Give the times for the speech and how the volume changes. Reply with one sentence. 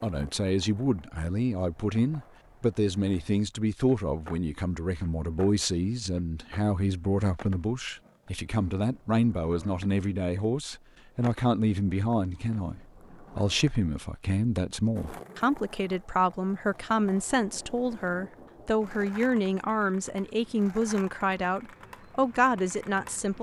You can hear the speech from 0.0 to 23.3 s, at a steady volume.